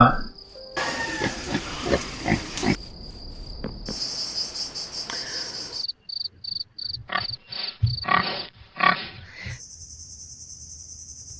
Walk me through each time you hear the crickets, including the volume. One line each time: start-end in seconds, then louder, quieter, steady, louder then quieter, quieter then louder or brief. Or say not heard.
0.0-11.3 louder then quieter.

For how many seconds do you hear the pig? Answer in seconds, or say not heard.
4 s.